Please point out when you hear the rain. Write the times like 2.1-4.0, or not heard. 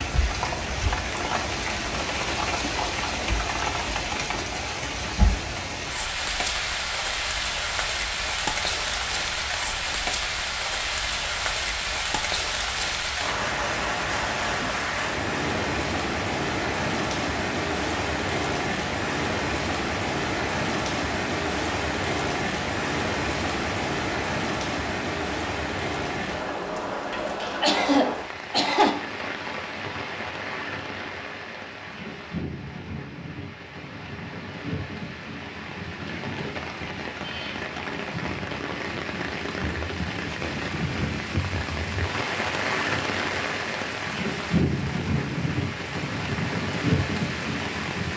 0.0-48.1.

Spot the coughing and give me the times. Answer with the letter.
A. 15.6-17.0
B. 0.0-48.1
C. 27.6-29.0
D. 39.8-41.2
C.